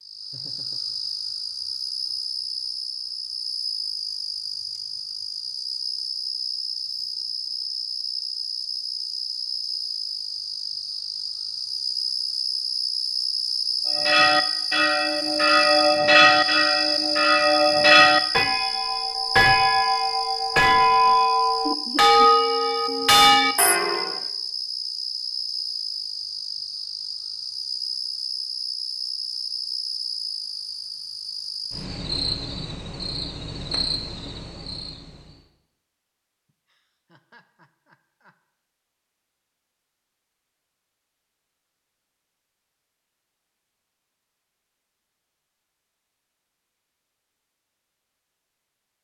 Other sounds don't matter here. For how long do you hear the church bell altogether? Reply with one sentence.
The church bell can be heard for 10 seconds in total.